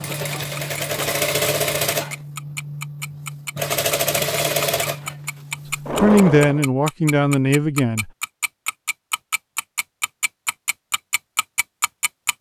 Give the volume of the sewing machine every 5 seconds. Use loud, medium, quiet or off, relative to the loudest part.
loud, loud, off.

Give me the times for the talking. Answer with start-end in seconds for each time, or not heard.
6.0-8.1.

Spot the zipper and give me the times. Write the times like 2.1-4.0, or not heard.
not heard.